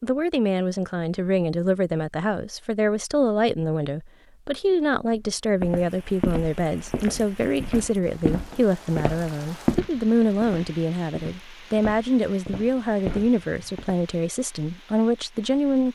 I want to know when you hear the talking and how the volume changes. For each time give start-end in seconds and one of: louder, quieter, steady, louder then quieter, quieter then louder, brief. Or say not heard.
0.0-15.8 steady.